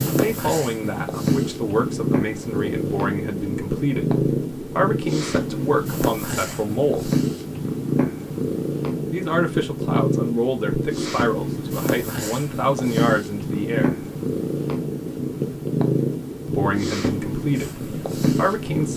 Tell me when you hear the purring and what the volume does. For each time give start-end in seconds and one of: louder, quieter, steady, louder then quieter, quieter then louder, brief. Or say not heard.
0.0-18.9 steady.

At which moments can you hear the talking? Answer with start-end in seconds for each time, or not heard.
0.0-7.1, 9.1-14.1, 16.4-18.9.